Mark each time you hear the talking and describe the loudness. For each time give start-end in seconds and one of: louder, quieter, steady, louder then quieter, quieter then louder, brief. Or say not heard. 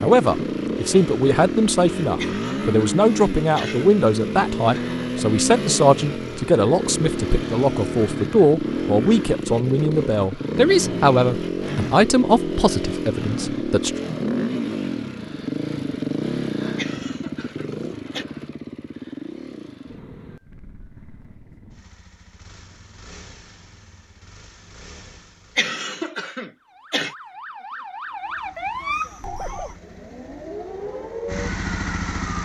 0.0-13.9 steady.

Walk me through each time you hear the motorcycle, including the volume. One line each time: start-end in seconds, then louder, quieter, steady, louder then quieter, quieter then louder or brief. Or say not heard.
0.0-25.8 quieter
28.2-32.4 louder.